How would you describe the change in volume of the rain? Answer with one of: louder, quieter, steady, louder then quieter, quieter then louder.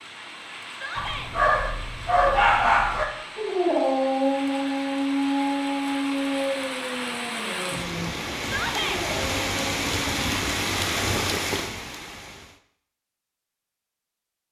louder.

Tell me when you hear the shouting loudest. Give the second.
9 s.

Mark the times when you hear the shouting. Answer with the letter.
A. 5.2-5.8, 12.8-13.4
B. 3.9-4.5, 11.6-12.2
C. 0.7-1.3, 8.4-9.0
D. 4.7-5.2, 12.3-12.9
C.